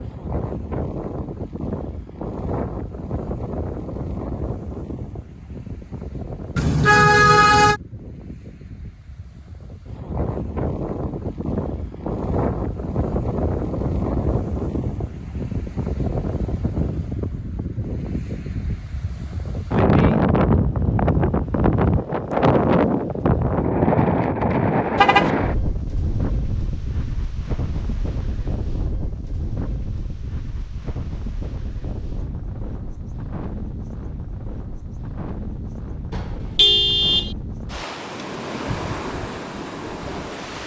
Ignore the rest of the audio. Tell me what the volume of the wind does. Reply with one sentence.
The loudness of the wind goes up, then down.